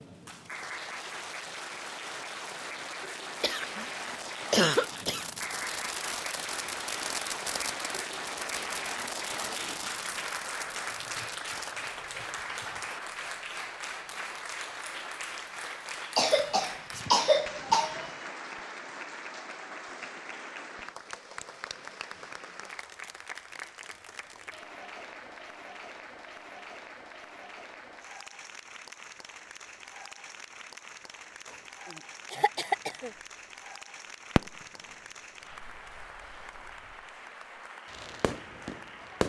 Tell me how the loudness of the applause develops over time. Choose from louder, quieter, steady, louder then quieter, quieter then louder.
quieter.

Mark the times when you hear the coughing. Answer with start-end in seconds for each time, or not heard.
3.4-5.2, 16.1-18.1, 31.9-33.1.